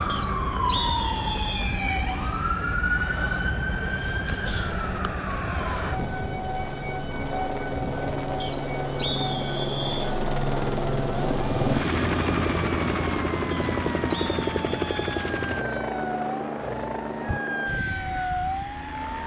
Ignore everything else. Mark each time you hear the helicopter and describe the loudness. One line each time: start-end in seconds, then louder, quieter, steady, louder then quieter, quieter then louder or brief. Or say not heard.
0.1-19.2 louder then quieter.